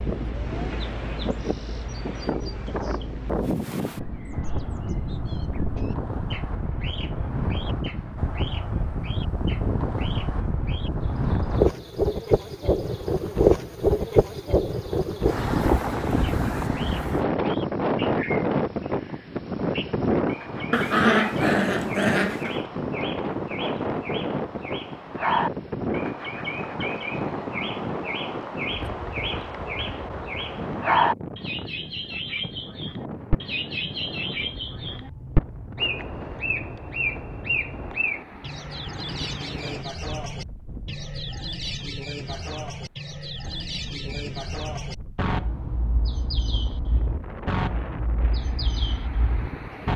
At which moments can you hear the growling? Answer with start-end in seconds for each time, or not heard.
20.7-22.6.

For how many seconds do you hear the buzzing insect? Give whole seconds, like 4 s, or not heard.
not heard.